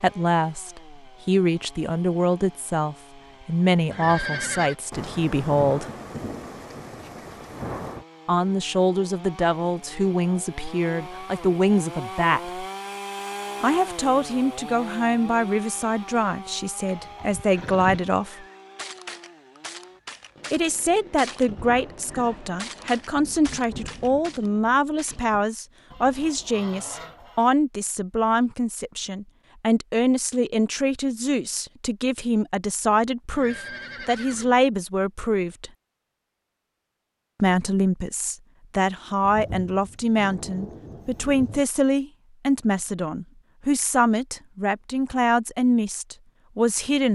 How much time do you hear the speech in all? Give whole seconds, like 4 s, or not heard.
40 s.